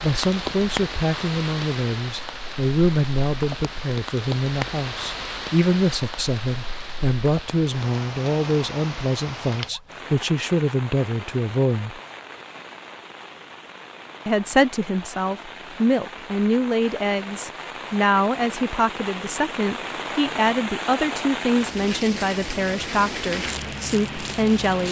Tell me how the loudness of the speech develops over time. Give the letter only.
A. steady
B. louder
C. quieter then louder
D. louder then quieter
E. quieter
A.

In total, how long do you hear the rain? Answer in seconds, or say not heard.
25 s.